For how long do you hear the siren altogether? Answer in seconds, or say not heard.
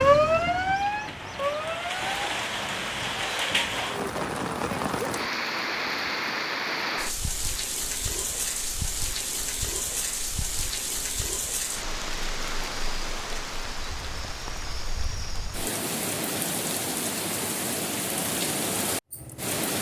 2 s.